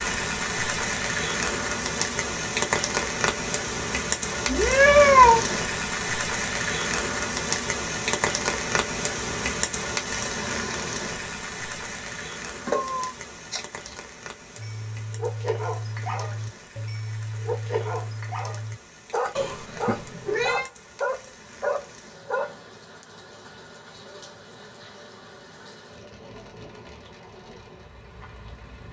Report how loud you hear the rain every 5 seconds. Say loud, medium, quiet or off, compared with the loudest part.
loud, loud, medium, quiet, quiet, quiet.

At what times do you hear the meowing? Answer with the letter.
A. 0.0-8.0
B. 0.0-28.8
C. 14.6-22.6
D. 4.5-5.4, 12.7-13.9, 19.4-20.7
D.